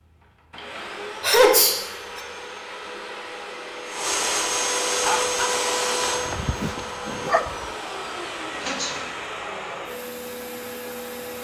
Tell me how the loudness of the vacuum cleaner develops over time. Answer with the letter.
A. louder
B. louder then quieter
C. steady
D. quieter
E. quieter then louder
B.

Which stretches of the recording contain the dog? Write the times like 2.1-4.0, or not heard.
5.0-7.8.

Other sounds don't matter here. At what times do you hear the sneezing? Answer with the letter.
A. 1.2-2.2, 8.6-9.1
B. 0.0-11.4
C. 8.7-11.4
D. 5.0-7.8
A.